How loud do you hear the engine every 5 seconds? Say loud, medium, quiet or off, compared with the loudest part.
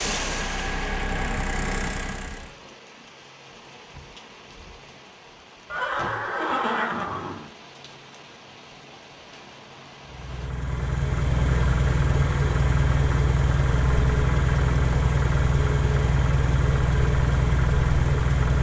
medium, off, loud, loud.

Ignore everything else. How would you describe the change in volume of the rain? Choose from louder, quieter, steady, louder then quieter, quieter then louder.
quieter.